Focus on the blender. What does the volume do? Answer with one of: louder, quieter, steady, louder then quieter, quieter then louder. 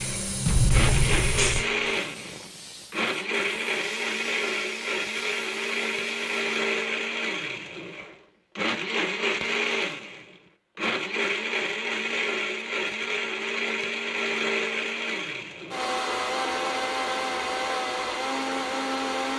steady.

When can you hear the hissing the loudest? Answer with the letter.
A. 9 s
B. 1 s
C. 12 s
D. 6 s
B.